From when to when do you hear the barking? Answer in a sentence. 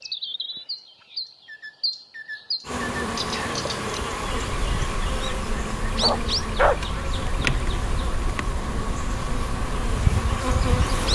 The barking can be heard from 6.0 to 6.8 s.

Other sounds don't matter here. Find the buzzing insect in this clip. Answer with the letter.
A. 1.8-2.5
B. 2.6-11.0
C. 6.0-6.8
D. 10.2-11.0
B.